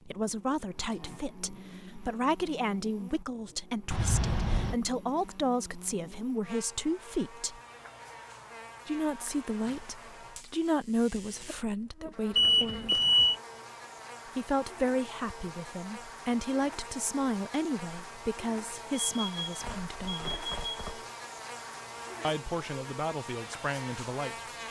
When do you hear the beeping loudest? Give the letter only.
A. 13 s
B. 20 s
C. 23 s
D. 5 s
A.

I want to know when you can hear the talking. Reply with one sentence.
The talking can be heard from 0.1 to 7.6 s, from 8.8 to 12.9 s, from 14.3 to 20.4 s and from 22.2 to 24.4 s.